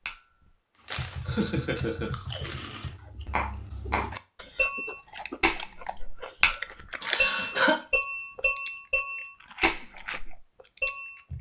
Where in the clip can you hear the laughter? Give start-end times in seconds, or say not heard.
1.2-2.1, 7.0-7.8.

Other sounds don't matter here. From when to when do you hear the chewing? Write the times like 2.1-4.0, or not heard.
0.8-11.2.